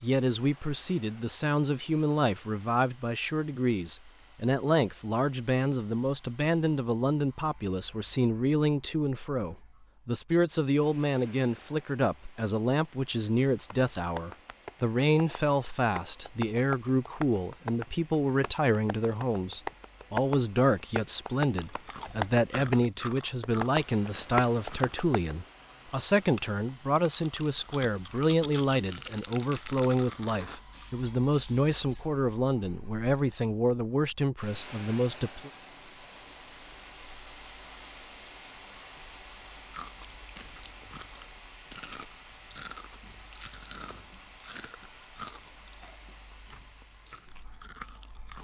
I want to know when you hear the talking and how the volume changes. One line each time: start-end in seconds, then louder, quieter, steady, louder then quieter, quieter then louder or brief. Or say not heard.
0.0-35.5 steady.